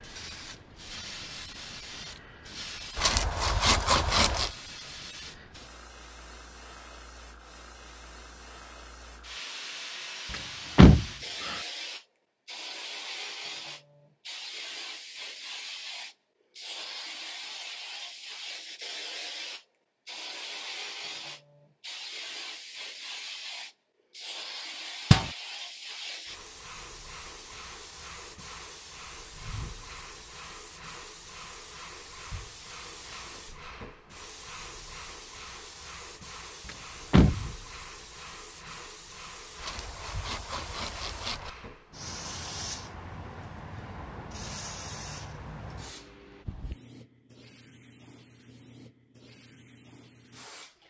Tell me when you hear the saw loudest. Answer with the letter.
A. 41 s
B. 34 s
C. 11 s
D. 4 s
D.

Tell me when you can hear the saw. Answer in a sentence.
The saw can be heard from 3.0 to 4.5 s and from 39.5 to 41.5 s.